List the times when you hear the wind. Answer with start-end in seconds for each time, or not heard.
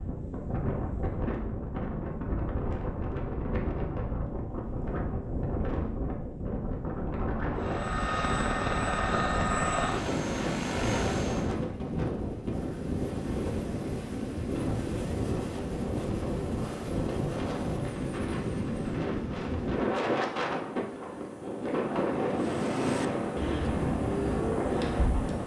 0.0-25.4.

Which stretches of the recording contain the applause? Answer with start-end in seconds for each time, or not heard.
not heard.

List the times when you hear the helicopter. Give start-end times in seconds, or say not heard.
7.6-11.6, 22.4-25.4.